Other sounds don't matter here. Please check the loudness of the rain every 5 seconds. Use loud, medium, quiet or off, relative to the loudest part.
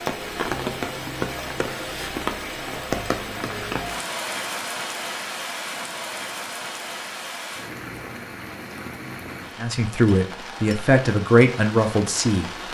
loud, medium, medium.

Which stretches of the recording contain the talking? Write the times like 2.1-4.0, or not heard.
9.6-12.5.